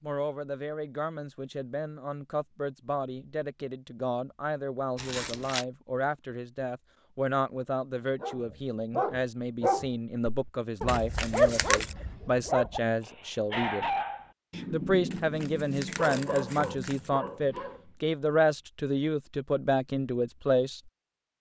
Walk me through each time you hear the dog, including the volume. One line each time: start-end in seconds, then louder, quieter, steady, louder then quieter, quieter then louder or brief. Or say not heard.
8.2-17.9 quieter.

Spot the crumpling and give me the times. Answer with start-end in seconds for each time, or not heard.
5.0-5.7, 10.8-11.9, 15.1-17.1.